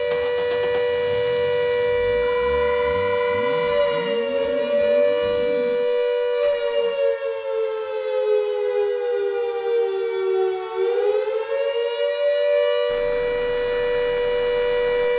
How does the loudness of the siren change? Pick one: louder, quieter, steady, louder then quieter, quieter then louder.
steady.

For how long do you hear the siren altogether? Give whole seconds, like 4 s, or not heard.
15 s.